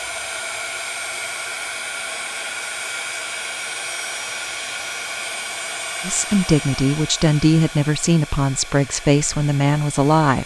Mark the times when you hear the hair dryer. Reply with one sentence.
You can hear the hair dryer from 0.0 to 10.4 s.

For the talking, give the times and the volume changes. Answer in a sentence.
You can hear the talking from 6.0 to 10.4 s, at a steady volume.